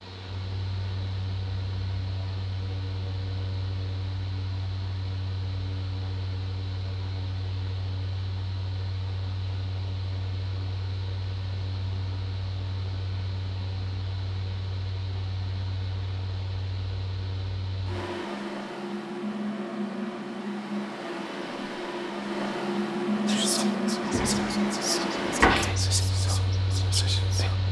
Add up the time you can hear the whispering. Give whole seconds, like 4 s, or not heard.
4 s.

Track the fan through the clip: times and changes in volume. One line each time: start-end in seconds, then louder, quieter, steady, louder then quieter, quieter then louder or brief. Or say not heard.
0.0-27.6 louder.